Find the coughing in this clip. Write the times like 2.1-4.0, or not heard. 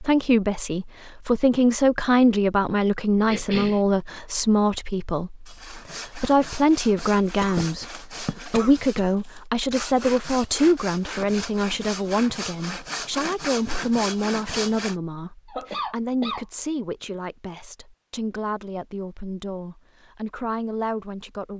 3.2-3.8, 7.4-9.1, 15.4-16.4.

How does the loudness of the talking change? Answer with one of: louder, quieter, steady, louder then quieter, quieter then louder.
quieter.